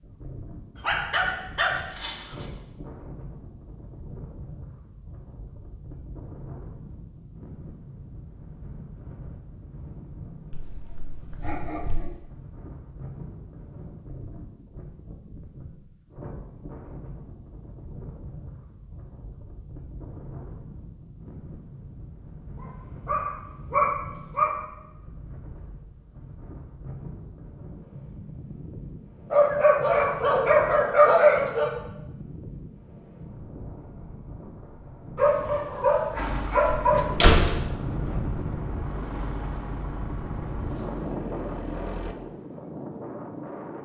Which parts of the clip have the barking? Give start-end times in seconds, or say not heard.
0.8-2.5, 10.5-12.2, 22.6-24.6, 29.3-31.8, 35.1-37.0.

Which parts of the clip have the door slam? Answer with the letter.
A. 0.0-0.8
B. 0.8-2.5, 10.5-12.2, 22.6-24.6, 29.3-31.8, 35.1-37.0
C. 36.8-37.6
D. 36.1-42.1
C.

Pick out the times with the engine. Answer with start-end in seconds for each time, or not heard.
36.1-42.1.